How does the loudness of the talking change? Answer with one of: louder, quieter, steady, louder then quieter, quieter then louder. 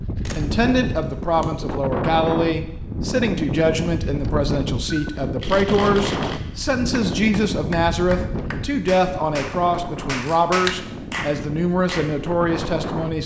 steady.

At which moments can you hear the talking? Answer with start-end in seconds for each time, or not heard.
0.1-13.2.